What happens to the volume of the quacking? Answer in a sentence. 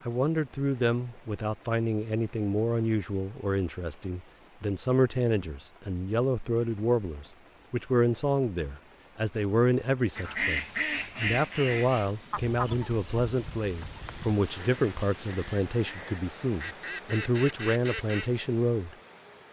The volume of the quacking goes down, then up.